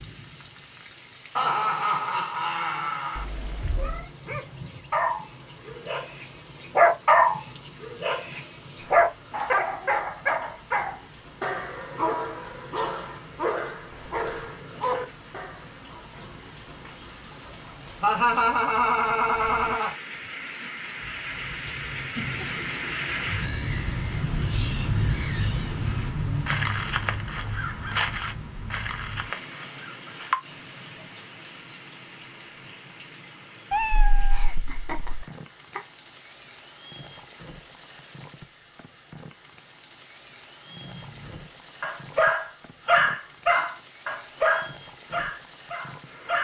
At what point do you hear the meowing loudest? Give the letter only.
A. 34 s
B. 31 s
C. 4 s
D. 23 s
A.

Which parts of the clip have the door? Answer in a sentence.
The door can't be heard in this clip.